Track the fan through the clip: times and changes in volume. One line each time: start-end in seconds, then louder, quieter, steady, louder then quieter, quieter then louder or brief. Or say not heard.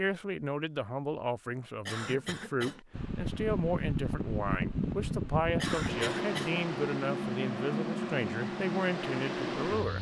2.9-9.9 steady.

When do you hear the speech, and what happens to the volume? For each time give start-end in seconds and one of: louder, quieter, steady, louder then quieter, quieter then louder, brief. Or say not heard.
0.0-9.9 steady.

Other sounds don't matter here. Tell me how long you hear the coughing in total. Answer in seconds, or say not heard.
2 s.